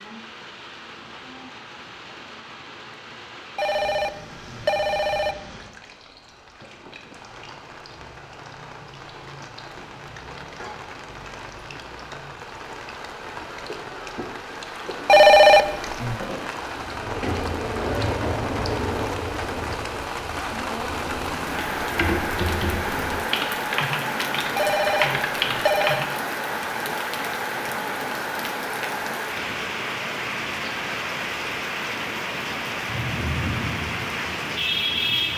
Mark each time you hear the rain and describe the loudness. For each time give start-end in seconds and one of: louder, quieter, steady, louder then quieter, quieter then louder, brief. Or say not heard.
0.0-35.3 louder.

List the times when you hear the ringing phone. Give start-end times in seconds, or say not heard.
3.5-5.3, 15.1-16.2, 24.6-26.1.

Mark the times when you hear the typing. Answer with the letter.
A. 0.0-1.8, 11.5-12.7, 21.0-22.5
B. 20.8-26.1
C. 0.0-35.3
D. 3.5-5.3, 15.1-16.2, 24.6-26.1
B.